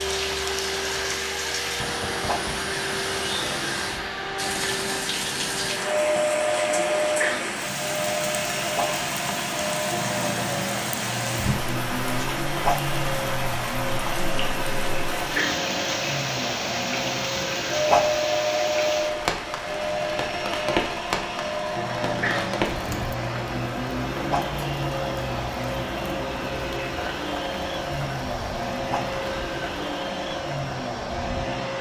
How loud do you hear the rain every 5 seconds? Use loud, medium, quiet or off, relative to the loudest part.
loud, loud, loud, loud, loud, medium, off.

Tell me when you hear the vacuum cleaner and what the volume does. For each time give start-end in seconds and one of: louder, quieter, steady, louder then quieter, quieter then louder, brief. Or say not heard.
0.0-31.7 steady.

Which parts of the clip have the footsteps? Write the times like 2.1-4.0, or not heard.
not heard.